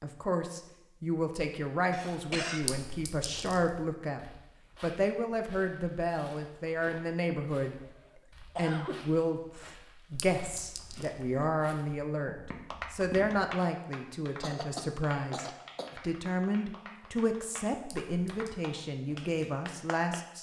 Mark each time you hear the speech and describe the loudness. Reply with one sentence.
The speech can be heard from 0.0 to 20.3 s, at a steady volume.